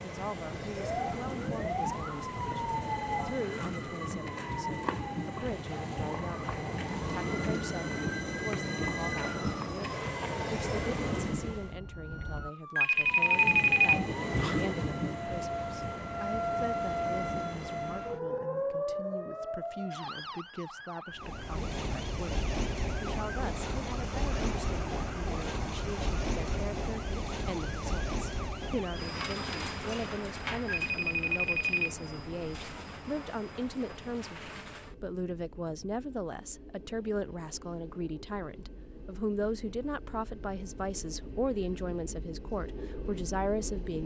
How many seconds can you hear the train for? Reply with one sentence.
The train can be heard for 40 seconds in total.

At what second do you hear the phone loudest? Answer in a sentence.
The loudest moment of the phone is at 14 seconds.